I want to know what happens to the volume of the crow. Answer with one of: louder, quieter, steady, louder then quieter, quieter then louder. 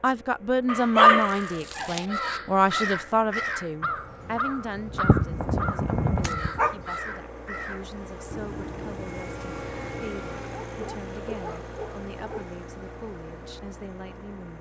quieter.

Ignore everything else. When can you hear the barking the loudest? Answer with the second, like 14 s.
1 s.